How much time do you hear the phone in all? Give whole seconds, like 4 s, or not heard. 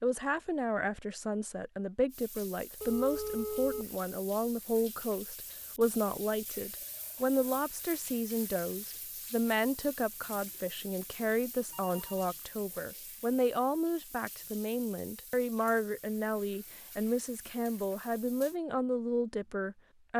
2 s.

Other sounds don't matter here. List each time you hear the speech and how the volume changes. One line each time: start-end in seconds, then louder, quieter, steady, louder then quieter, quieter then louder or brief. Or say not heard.
0.0-20.1 steady.